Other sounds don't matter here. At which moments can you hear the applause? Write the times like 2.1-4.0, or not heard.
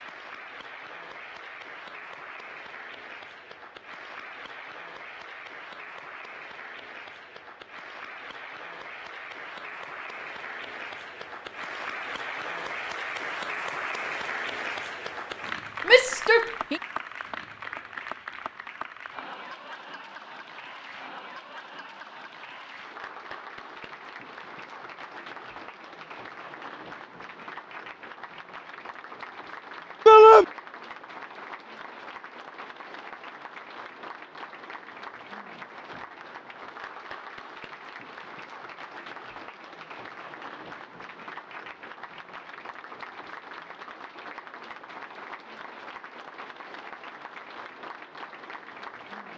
0.0-49.3.